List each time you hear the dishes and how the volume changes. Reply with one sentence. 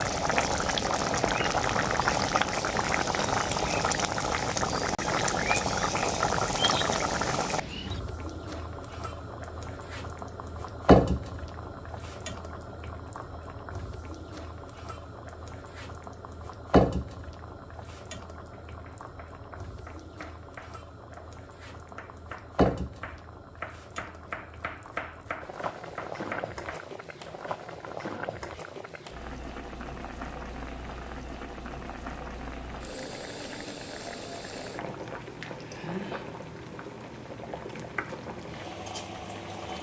You can't hear the dishes here.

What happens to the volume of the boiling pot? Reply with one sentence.
The loudness of the boiling pot goes down.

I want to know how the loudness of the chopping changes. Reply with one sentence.
The volume of the chopping goes up.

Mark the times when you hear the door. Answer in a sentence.
You can't hear the door here.